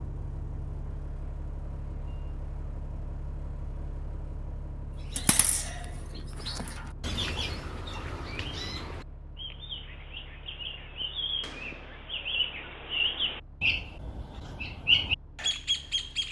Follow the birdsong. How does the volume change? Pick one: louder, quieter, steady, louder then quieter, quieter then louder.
louder.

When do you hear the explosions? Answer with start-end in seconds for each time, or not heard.
11.4-12.1.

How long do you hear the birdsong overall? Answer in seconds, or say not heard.
11 s.